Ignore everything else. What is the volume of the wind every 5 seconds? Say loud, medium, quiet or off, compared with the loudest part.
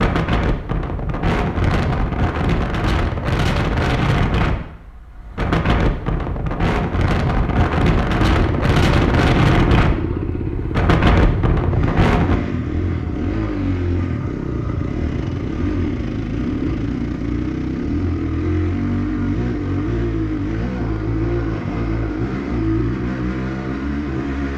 loud, loud, loud, off, off.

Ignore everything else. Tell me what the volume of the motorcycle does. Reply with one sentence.
The volume of the motorcycle stays about the same.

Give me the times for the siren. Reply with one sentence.
You can't hear the siren here.